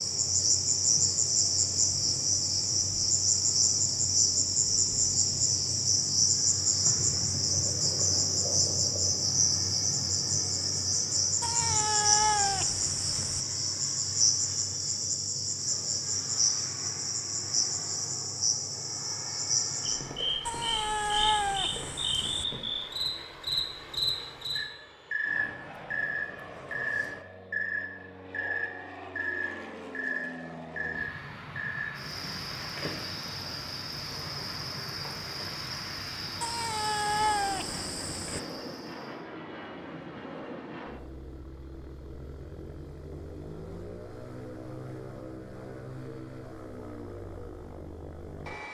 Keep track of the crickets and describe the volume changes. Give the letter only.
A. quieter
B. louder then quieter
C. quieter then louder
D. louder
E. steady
A.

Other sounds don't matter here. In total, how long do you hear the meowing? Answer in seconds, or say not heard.
6 s.